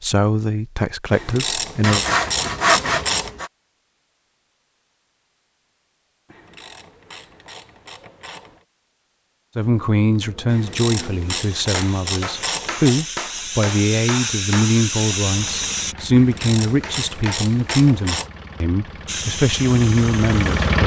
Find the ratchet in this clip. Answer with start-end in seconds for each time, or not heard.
1.1-3.3, 6.3-8.6, 10.4-13.1, 16.1-18.3.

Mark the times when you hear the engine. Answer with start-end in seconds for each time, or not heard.
15.2-20.8.